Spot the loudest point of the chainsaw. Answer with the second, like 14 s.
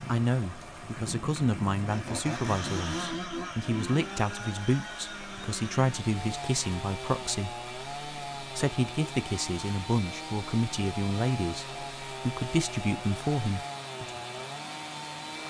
3 s.